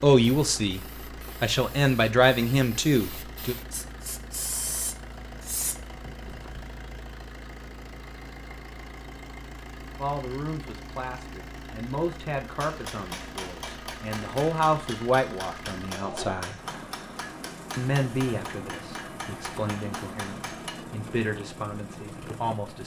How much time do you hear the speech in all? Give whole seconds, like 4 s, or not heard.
15 s.